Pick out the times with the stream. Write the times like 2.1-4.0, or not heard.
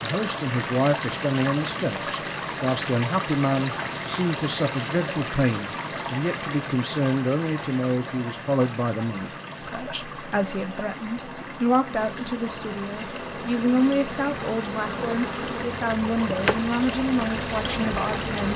0.0-18.5.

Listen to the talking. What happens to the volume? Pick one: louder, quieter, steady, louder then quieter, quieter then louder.
steady.